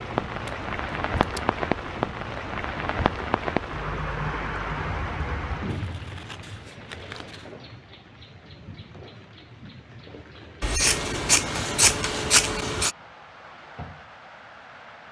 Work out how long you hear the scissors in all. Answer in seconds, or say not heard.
5 s.